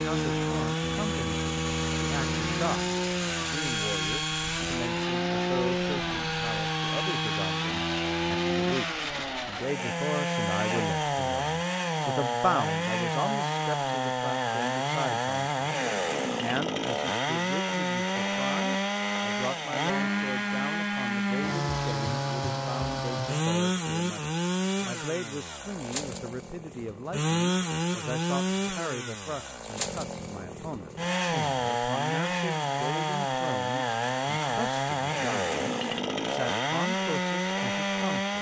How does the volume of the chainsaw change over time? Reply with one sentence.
The loudness of the chainsaw stays about the same.